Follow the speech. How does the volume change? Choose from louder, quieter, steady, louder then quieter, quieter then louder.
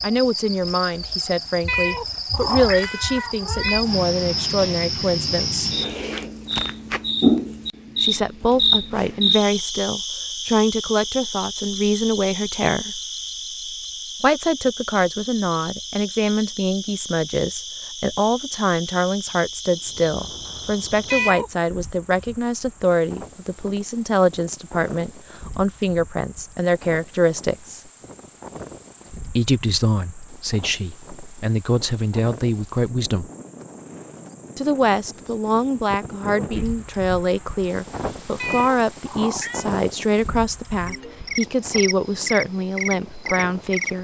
steady.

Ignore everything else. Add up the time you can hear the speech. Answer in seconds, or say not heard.
38 s.